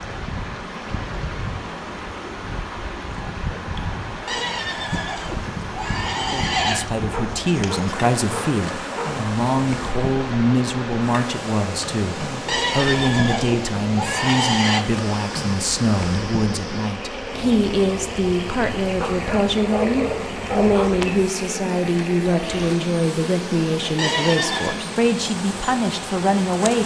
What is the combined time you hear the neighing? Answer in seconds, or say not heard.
6 s.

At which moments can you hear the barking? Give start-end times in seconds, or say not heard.
7.1-9.1, 19.0-20.9.